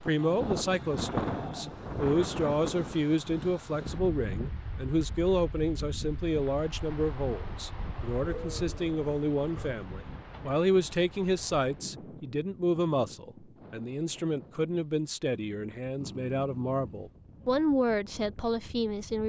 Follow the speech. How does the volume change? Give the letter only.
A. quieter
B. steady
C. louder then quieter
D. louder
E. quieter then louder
B.